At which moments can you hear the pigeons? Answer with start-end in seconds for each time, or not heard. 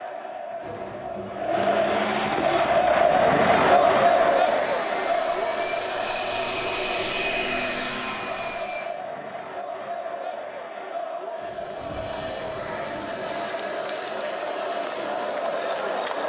0.6-2.6, 11.4-13.5.